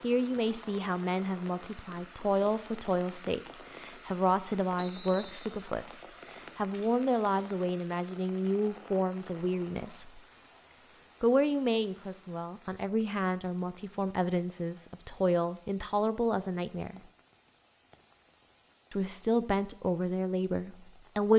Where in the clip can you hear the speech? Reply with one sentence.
You can hear the speech from 0.0 to 10.2 s, from 11.2 to 17.0 s and from 18.9 to 21.3 s.